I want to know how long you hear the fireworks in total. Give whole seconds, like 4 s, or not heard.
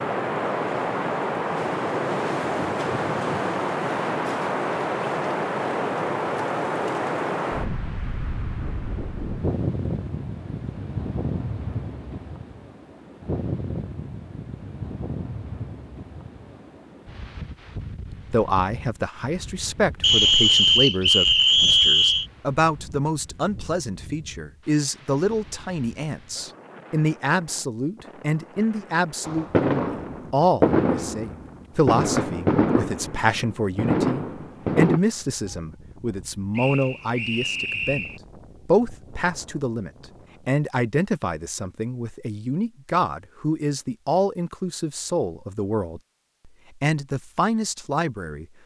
6 s.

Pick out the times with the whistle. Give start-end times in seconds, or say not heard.
20.0-22.2, 36.5-38.2.